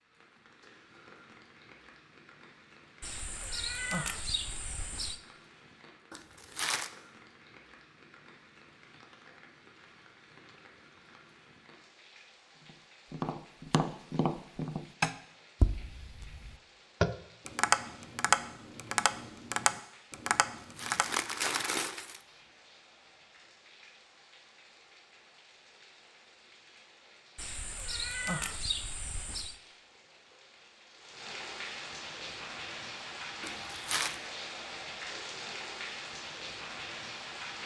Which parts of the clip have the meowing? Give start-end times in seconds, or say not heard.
3.0-5.2, 27.4-29.6.